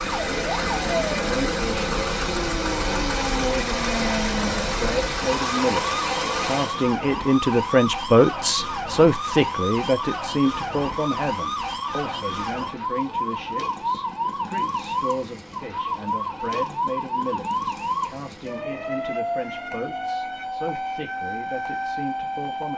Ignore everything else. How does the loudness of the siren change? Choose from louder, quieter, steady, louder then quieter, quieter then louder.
steady.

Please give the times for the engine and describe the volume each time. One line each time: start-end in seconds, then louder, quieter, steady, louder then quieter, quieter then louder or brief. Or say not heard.
0.0-6.8 steady.